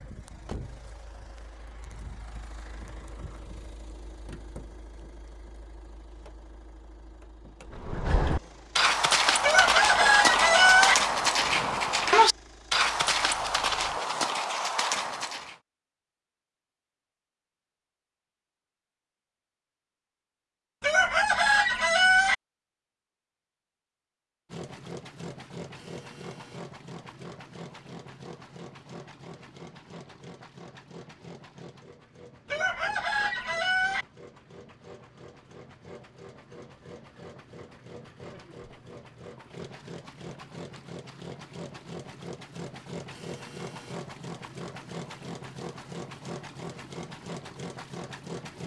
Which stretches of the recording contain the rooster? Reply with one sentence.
You can hear the rooster from 9.4 to 10.9 s, from 20.8 to 22.4 s and from 32.5 to 34.0 s.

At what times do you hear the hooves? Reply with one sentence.
You can hear the hooves from 7.7 to 15.6 s.